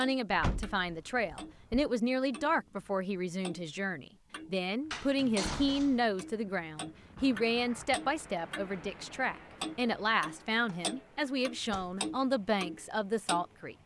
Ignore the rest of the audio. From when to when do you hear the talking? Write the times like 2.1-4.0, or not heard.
0.0-13.8.